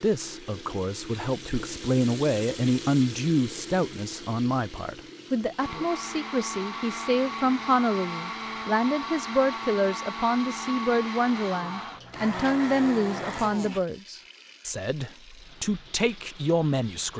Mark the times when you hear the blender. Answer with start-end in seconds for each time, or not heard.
5.5-13.8.